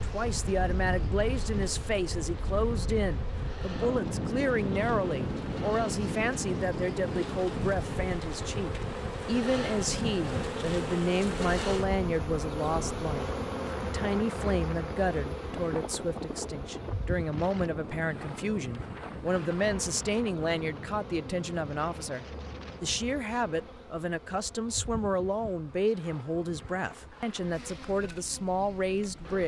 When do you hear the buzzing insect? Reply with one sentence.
The buzzing insect can be heard from 0.0 to 29.4 s.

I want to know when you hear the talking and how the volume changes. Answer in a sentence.
You can hear the talking from 0.0 to 29.4 s, at a steady volume.